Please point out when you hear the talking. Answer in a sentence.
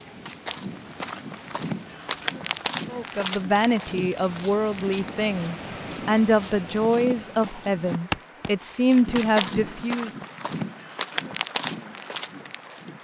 You can hear the talking from 2.9 to 10.1 s.